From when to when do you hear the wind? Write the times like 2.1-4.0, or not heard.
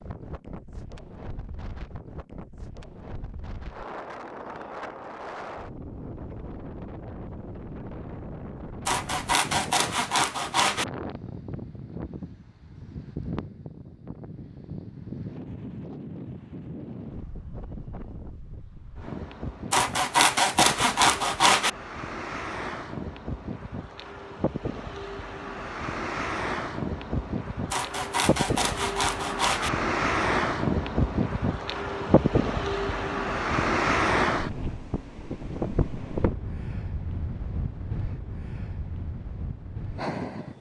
0.0-40.5.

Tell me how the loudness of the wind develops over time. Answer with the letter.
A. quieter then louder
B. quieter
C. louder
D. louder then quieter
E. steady
C.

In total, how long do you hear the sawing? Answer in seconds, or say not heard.
6 s.